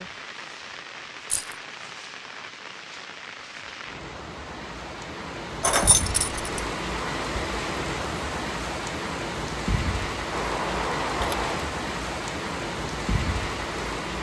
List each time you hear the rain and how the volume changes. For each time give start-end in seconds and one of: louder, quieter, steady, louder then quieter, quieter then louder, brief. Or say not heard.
0.0-14.1 louder.